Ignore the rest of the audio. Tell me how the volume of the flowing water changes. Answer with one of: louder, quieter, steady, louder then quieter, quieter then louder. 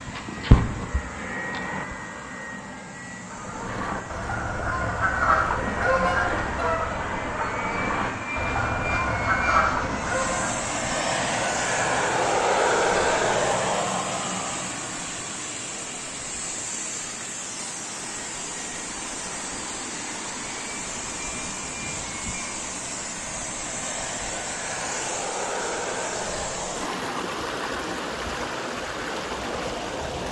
louder.